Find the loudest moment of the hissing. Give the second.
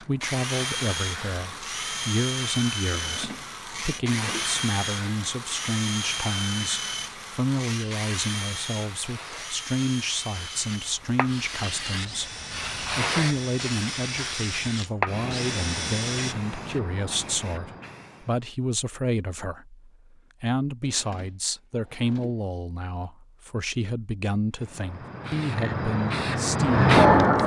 27 s.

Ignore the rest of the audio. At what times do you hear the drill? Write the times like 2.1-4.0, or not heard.
0.0-16.4.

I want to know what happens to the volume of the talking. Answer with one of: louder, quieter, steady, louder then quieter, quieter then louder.
steady.